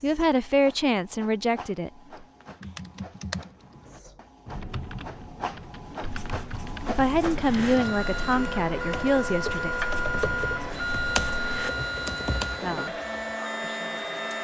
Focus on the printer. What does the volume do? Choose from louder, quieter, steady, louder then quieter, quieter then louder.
louder.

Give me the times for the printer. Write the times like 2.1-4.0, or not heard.
0.0-14.4.